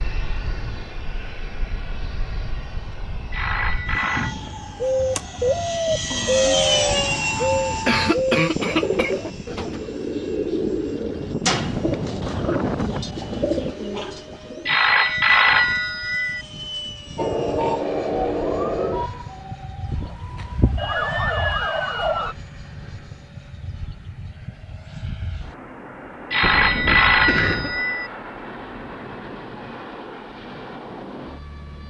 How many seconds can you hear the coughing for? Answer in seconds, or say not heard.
3 s.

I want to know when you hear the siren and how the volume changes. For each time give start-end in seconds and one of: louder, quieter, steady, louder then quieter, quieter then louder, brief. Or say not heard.
4.1-8.2 louder
17.1-22.4 quieter then louder.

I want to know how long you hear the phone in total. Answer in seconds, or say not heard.
5 s.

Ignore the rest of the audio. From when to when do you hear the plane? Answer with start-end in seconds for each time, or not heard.
0.0-31.8.